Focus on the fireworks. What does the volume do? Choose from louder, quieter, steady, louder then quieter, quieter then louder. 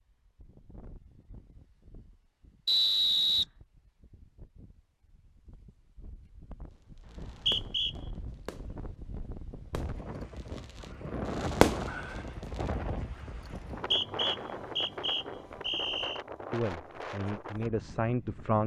quieter then louder.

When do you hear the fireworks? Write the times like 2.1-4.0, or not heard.
7.1-12.7.